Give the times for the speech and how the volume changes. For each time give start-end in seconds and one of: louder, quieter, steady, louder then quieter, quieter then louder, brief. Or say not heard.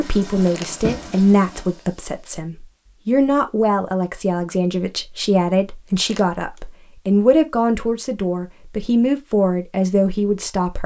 0.0-10.8 steady.